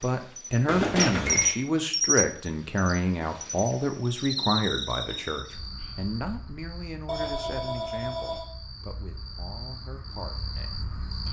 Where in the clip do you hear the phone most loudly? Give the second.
1 s.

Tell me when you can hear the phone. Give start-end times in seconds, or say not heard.
0.7-1.6, 7.0-8.5.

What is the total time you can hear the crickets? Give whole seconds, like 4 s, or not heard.
11 s.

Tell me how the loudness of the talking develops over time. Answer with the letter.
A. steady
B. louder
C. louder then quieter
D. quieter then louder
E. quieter
E.